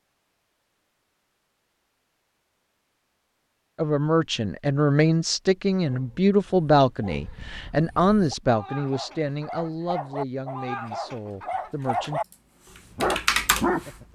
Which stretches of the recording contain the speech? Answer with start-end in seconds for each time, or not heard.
3.8-12.2.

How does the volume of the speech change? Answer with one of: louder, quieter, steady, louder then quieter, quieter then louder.
quieter.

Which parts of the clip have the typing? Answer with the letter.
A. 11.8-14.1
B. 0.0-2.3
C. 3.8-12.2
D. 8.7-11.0
A.